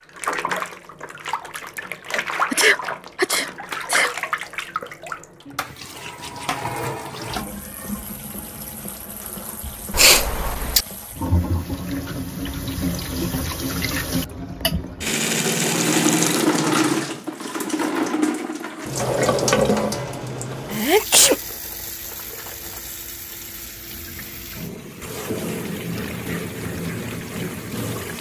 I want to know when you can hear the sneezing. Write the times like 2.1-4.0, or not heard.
2.5-4.1, 9.9-10.8, 20.7-21.4.